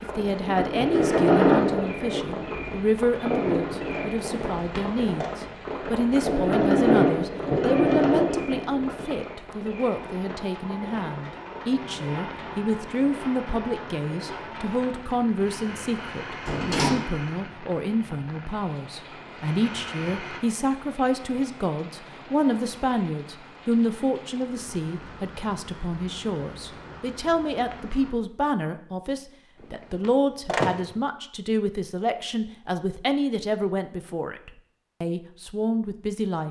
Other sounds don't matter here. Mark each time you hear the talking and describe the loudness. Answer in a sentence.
The talking can be heard from 0.0 to 36.4 s, at a steady volume.